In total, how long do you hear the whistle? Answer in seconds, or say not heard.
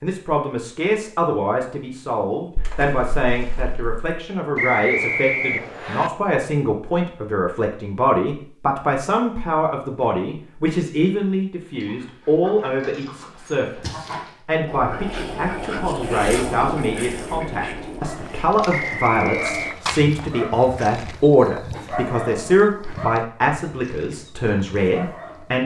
3 s.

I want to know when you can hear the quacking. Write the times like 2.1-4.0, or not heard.
11.8-19.8.